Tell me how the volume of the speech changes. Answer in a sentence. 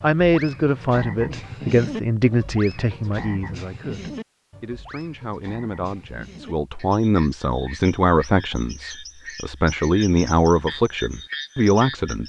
The loudness of the speech goes down, then up.